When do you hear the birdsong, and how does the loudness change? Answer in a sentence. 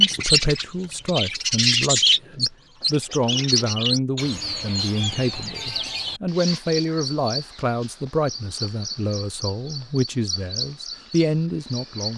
You can hear the birdsong from 0.0 to 12.1 s, getting quieter.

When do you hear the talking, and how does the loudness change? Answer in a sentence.
The talking can be heard from 0.0 to 12.1 s, at a steady volume.